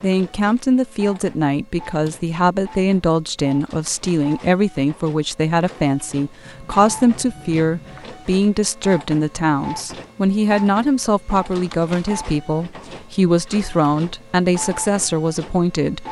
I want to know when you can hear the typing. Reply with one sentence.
The typing can't be heard in this clip.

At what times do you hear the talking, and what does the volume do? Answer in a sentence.
You can hear the talking from 0.0 to 16.0 s, at a steady volume.